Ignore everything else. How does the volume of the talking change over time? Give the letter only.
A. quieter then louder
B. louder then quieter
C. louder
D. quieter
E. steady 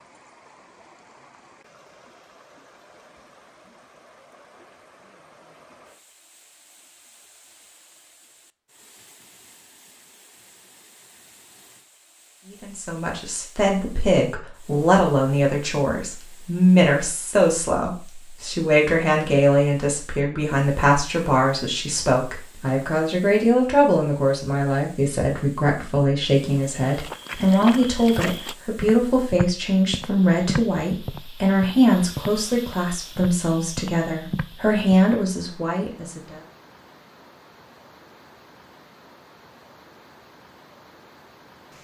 E.